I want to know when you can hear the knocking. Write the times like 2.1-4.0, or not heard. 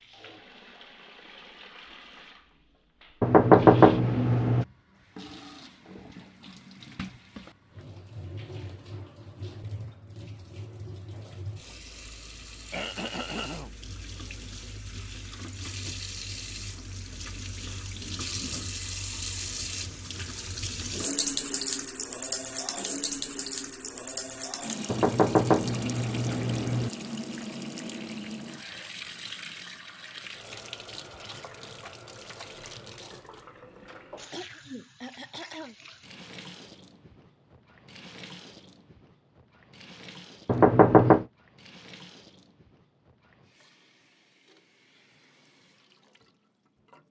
3.2-4.7, 24.9-26.9, 40.5-41.2.